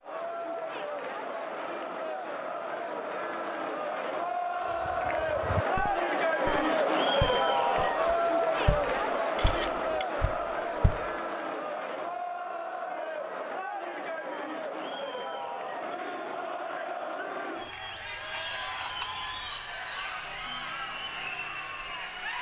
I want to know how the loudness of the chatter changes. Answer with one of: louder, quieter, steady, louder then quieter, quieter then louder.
louder then quieter.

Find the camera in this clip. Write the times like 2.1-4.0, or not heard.
4.5-5.0, 9.3-10.1, 18.2-19.6.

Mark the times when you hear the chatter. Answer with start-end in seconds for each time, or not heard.
0.0-22.3.